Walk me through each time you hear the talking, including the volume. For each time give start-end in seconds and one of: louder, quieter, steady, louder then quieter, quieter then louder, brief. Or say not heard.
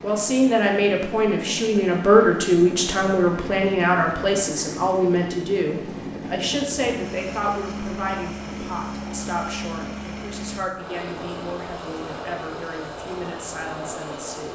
0.0-14.5 quieter.